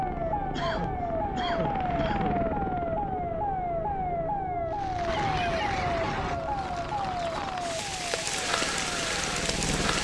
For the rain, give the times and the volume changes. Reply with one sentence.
The rain can be heard from 4.7 to 9.9 s, getting louder.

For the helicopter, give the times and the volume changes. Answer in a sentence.
The helicopter can be heard from 0.0 to 4.4 s, getting louder then quieter; and briefly from 8.3 to 9.9 s.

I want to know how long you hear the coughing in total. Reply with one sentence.
You can hear the coughing for 3 seconds altogether.